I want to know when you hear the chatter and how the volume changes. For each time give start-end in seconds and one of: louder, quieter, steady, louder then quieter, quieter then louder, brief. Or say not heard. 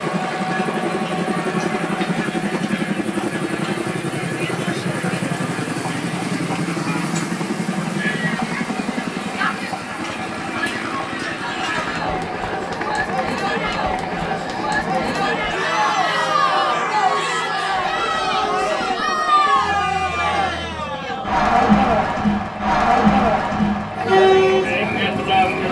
0.0-25.6 louder.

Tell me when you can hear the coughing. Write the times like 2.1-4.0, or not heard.
not heard.